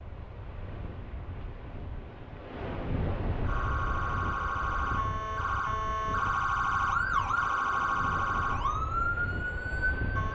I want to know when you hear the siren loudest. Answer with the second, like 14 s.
7 s.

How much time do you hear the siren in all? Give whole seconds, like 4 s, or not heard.
7 s.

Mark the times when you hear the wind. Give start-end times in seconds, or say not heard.
0.0-10.3.